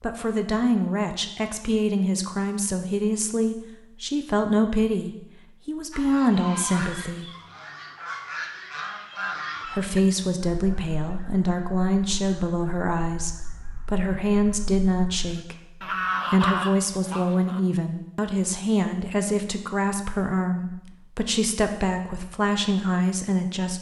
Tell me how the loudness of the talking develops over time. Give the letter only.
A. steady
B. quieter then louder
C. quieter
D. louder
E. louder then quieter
A.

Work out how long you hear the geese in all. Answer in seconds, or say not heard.
12 s.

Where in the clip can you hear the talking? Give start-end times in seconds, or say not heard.
0.0-7.2, 9.7-15.6, 16.3-23.7.